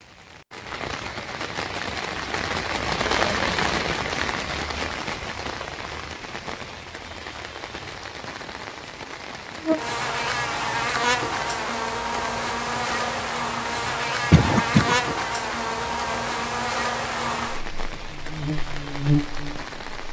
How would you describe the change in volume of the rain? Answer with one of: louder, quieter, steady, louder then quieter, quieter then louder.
quieter.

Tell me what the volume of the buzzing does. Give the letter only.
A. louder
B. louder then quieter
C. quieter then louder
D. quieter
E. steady
E.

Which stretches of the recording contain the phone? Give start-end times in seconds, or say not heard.
not heard.